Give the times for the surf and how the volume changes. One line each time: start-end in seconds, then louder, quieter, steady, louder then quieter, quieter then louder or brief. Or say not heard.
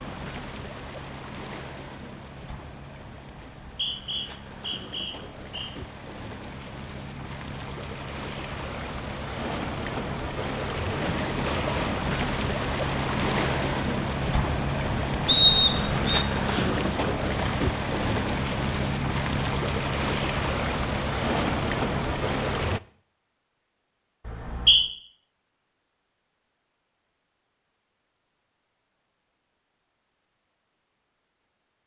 0.0-22.8 louder.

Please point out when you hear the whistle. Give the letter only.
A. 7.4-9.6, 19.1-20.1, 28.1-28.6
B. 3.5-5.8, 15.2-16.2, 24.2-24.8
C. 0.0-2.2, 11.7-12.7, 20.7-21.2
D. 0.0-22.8
B.